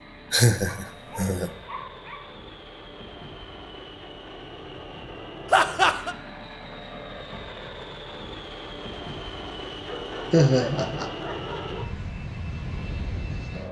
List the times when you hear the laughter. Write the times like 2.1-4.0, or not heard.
0.3-1.5, 5.5-6.2, 10.3-11.1.